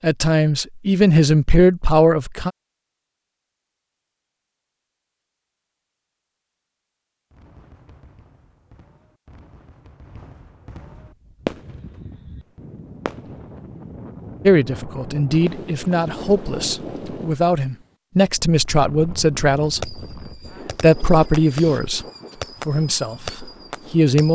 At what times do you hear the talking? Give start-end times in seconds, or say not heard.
0.0-2.5, 14.4-20.0, 20.8-22.1, 22.6-24.3.